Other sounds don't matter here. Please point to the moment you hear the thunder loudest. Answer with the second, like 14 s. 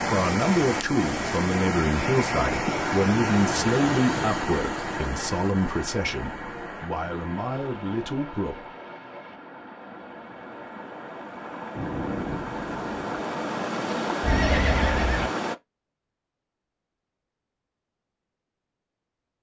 12 s.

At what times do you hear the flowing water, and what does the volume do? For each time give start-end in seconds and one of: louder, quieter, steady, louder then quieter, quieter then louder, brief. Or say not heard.
0.0-15.6 quieter then louder.